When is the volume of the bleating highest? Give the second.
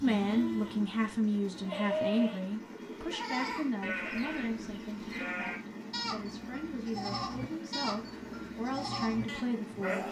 2 s.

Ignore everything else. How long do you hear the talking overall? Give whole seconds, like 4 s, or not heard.
10 s.